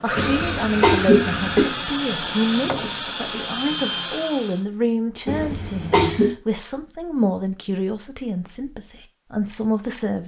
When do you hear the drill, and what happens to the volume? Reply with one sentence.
You can hear the drill from 0.0 to 4.7 s, at a steady volume.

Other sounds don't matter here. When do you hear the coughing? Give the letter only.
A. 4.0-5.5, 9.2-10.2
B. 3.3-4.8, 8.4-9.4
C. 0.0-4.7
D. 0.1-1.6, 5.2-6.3
D.